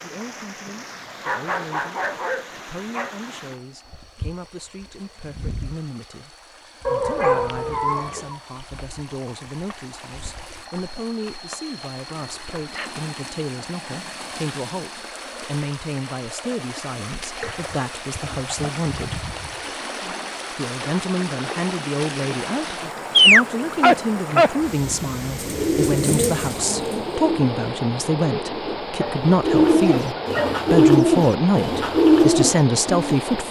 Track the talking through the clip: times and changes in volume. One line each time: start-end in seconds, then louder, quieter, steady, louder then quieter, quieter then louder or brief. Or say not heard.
0.0-19.2 louder
20.6-33.4 louder.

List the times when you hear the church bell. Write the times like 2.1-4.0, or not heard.
not heard.